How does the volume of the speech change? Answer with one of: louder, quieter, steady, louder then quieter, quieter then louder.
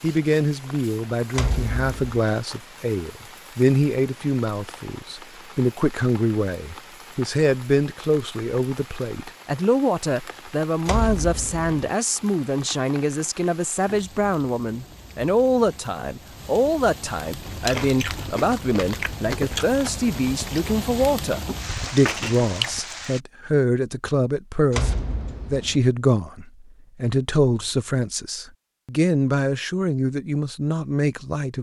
steady.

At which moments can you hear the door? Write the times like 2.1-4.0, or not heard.
1.3-2.2, 10.8-11.9, 24.7-25.8.